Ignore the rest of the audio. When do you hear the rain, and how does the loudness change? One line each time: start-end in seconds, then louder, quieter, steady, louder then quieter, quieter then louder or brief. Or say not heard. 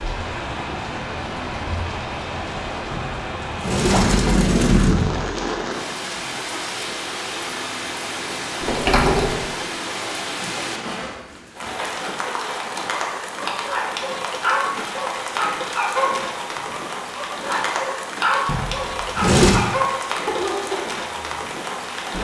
0.0-22.1 steady.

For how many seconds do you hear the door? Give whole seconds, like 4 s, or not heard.
5 s.